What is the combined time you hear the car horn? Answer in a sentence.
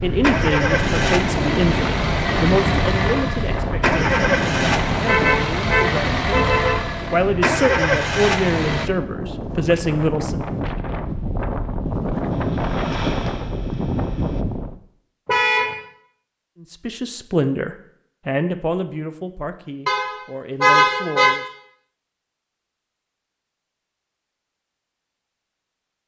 The car horn can be heard for 4 seconds in total.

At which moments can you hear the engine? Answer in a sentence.
The engine can be heard from 0.0 to 8.9 s and from 12.3 to 14.4 s.